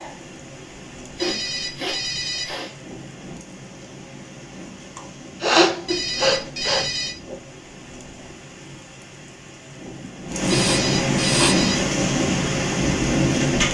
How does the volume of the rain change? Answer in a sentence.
The loudness of the rain goes up.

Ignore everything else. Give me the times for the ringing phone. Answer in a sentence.
You can hear the ringing phone from 1.1 to 2.5 s, from 5.8 to 7.2 s and from 10.5 to 11.8 s.